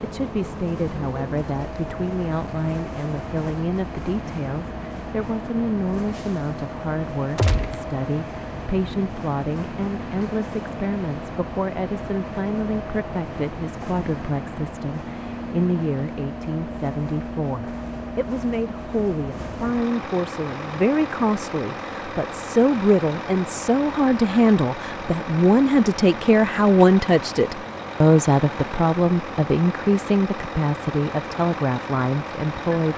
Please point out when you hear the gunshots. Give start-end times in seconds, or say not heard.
7.3-7.8.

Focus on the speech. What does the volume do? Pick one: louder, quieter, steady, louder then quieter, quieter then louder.
louder.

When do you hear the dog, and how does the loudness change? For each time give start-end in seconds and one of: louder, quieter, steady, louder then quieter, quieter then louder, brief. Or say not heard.
not heard.